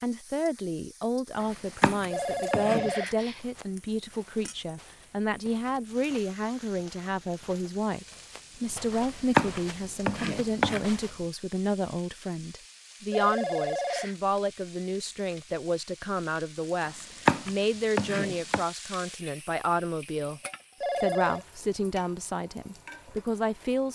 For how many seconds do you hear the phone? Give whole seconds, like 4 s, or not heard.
3 s.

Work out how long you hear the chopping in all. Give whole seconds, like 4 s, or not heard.
5 s.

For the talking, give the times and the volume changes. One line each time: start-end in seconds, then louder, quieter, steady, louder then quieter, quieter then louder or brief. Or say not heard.
0.0-20.4 steady
21.0-23.9 brief.